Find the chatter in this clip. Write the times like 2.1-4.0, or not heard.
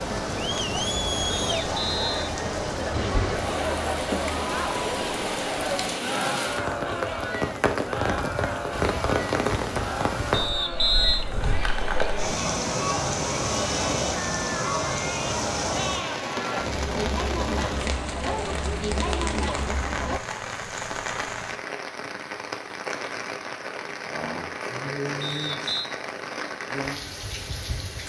0.0-20.2.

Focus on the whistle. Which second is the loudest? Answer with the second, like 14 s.
11 s.